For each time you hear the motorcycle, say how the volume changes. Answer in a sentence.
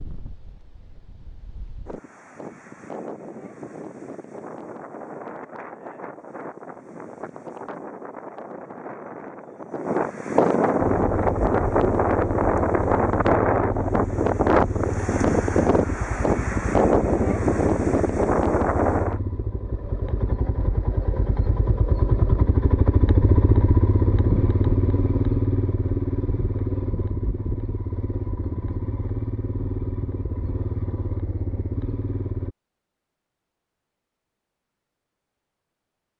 You can hear the motorcycle from 10.8 to 32.5 s, getting louder then quieter.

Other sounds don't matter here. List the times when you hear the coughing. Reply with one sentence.
You can't hear the coughing here.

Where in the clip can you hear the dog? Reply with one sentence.
The dog can't be heard in this clip.